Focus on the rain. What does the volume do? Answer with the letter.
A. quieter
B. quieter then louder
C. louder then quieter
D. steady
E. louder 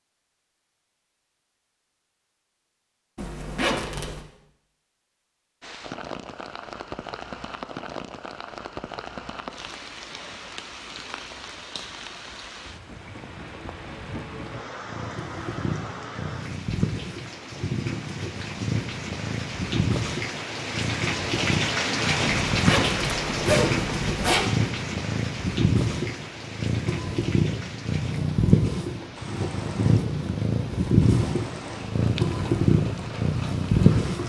C.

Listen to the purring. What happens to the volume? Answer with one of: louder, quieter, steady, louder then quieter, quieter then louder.
louder.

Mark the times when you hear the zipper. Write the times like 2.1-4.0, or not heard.
3.1-4.2, 22.5-24.5.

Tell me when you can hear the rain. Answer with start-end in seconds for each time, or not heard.
5.6-34.2.